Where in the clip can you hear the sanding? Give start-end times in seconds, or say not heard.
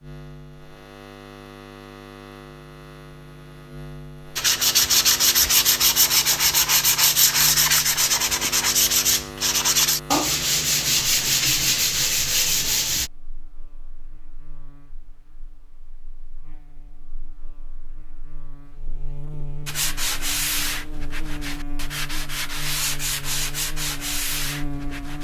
4.3-13.1, 19.6-25.1.